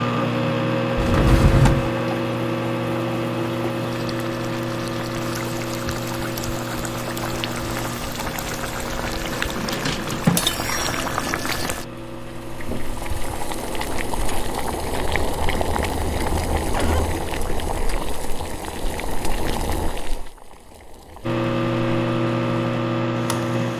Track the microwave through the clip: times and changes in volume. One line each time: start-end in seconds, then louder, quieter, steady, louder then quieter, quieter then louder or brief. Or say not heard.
0.0-14.6 quieter
21.2-23.7 brief.